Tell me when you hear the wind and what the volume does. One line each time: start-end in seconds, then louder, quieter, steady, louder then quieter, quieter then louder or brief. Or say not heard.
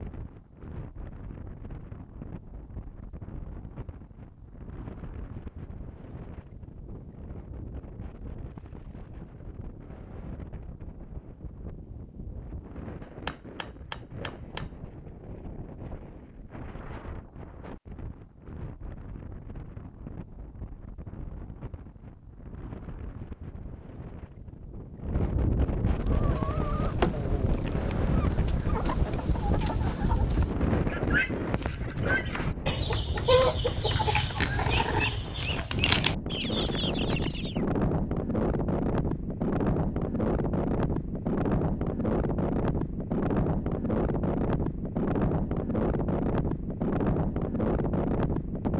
0.0-48.7 louder.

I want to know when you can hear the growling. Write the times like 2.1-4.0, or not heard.
33.9-35.2.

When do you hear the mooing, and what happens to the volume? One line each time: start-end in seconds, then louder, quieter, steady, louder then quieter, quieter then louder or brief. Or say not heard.
not heard.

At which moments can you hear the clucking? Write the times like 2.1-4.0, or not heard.
25.9-37.6.